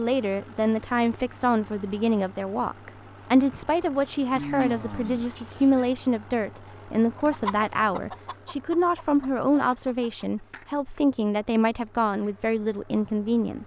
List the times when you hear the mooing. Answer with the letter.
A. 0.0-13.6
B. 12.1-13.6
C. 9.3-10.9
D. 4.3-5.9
D.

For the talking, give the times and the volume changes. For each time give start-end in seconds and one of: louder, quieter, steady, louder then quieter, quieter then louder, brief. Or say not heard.
0.0-13.6 steady.